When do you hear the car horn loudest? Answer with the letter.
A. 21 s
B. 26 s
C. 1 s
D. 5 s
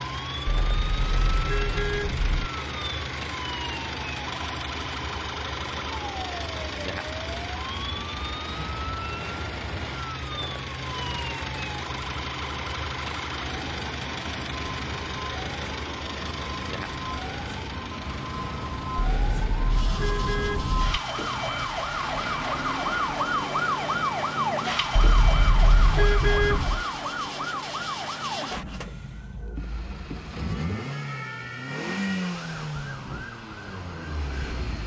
B.